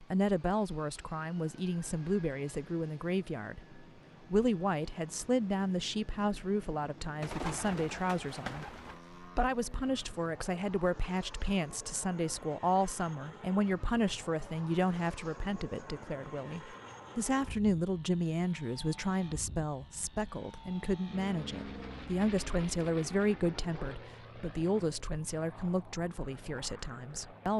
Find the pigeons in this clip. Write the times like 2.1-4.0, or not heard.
7.2-9.0.